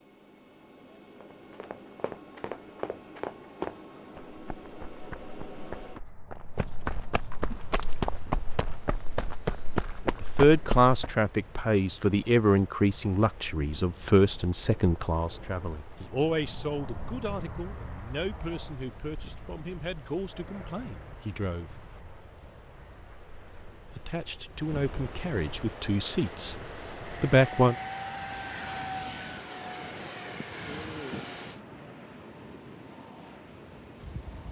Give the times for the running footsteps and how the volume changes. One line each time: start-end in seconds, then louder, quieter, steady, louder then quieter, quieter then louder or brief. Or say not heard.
1.2-11.2 louder.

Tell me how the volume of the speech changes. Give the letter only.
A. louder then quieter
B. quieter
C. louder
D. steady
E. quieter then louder
E.